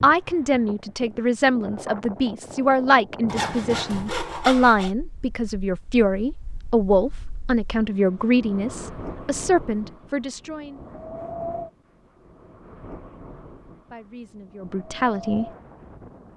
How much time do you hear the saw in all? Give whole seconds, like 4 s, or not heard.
2 s.